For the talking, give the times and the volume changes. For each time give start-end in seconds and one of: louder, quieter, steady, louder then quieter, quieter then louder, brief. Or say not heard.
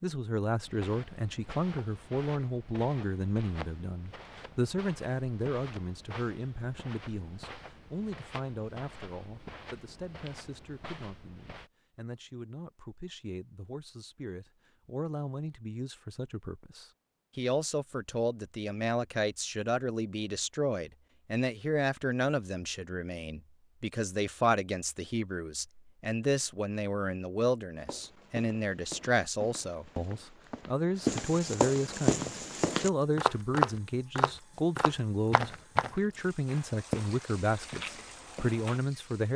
0.0-39.3 quieter then louder.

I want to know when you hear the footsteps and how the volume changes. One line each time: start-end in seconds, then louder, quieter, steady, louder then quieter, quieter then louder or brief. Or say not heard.
0.7-11.7 steady
27.8-38.8 louder then quieter.